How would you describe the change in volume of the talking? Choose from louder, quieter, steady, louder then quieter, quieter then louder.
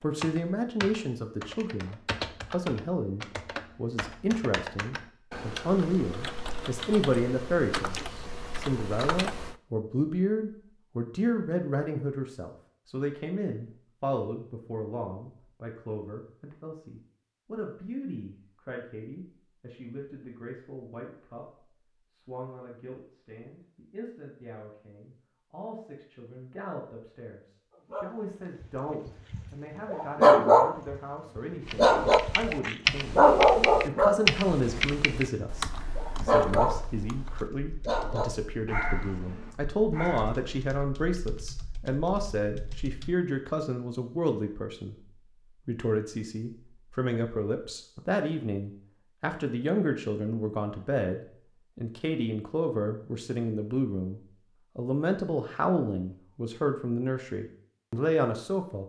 quieter then louder.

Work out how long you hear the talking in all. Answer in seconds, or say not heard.
59 s.